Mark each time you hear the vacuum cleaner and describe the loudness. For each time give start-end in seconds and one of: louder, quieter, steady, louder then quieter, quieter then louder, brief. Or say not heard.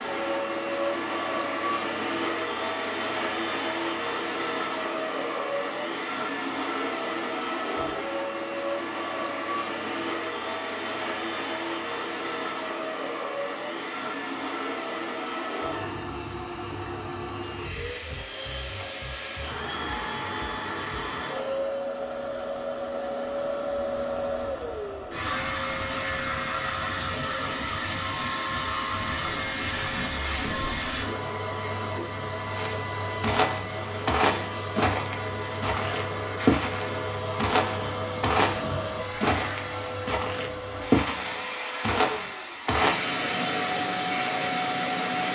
0.0-45.3 steady.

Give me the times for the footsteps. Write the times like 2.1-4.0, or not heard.
32.5-43.0.